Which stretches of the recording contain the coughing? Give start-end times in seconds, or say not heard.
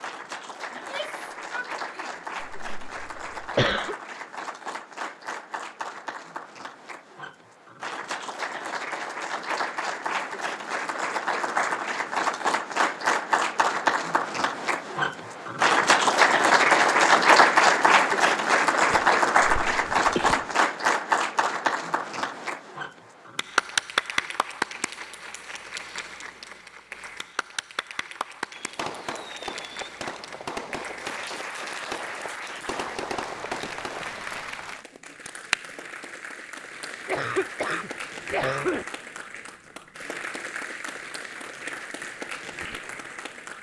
2.4-4.0, 18.9-20.4, 37.0-38.9.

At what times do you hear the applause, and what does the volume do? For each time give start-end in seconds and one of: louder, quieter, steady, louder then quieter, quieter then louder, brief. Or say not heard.
0.0-43.5 louder then quieter.